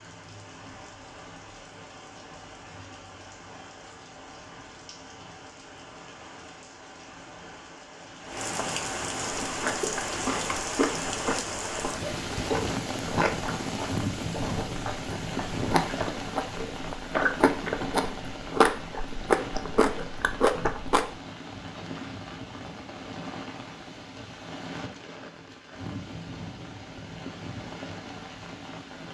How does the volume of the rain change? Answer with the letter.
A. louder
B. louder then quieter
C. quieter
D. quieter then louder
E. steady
B.